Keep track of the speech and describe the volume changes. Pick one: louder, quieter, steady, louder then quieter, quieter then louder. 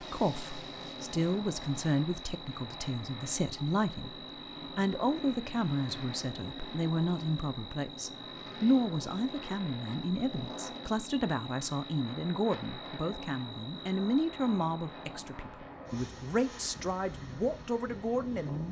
steady.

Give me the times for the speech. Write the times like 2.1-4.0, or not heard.
0.0-18.6.